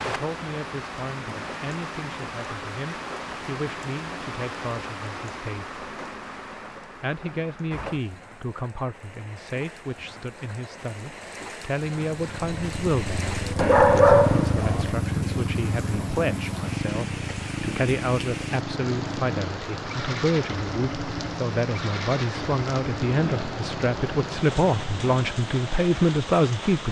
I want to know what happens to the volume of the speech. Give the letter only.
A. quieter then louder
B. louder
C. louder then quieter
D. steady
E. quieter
B.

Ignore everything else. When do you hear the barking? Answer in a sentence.
The barking can be heard from 13.6 to 14.9 s.